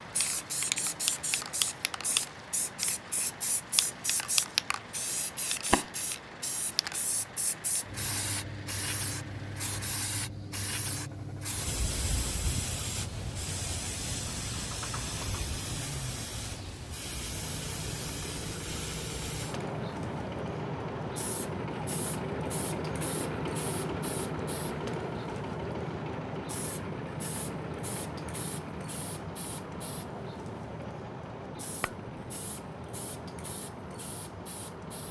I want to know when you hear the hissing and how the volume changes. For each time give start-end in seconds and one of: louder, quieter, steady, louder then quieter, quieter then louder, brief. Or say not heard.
0.0-35.0 quieter.